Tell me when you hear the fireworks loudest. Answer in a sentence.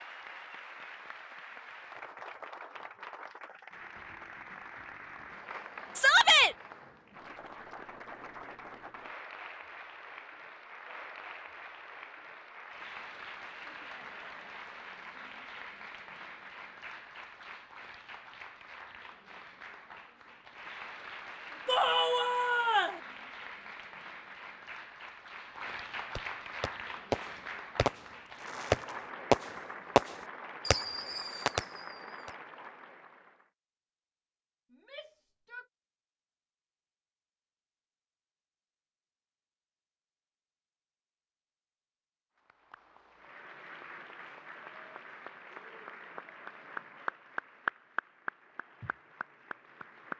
The loudest moment of the fireworks is at 29 seconds.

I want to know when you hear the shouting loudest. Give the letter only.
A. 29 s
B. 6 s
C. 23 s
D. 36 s
B.